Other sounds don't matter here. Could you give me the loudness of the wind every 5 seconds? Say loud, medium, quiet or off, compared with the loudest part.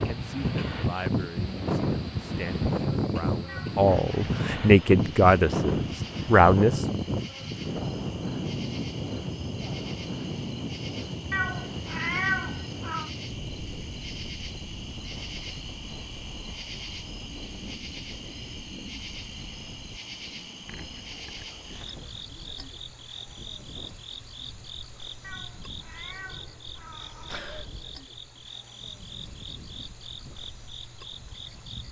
loud, loud, medium, quiet, quiet, quiet, quiet.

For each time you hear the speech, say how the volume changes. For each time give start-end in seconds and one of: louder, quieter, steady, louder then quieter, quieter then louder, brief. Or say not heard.
0.0-7.0 louder.